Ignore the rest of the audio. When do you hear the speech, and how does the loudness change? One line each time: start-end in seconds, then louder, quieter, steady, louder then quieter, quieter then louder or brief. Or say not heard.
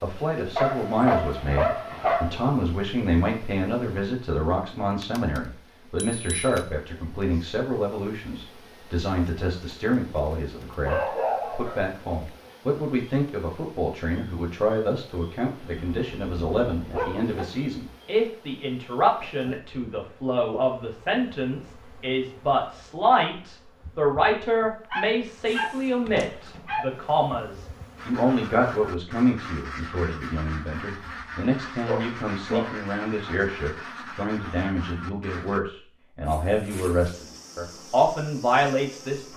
0.0-39.3 steady.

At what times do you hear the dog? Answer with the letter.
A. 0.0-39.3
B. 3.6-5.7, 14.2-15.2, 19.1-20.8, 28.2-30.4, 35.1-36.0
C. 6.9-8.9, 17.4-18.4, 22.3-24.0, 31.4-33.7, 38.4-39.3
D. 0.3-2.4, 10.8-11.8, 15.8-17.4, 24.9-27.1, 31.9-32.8
D.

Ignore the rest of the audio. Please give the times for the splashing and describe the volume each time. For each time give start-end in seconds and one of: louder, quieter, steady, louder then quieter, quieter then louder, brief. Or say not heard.
not heard.